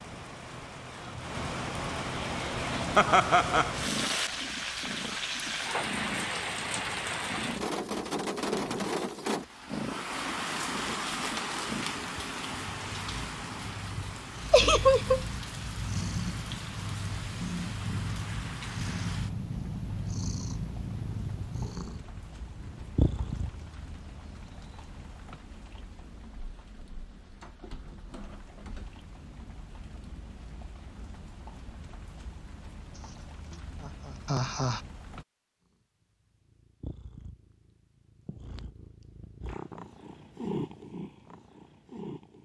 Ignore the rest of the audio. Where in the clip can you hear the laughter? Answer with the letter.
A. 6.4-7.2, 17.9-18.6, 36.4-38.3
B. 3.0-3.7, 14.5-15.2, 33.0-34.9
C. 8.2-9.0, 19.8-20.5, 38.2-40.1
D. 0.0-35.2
B.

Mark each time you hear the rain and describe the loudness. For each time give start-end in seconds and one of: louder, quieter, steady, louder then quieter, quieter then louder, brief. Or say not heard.
0.0-35.2 quieter.